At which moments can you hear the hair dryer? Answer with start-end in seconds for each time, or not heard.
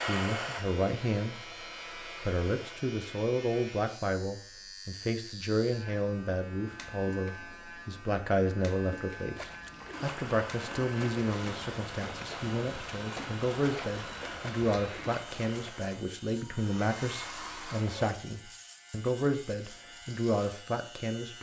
0.0-2.8, 9.9-18.1.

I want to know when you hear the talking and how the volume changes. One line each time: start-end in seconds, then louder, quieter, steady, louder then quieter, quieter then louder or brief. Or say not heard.
0.0-1.6 brief
2.2-21.3 steady.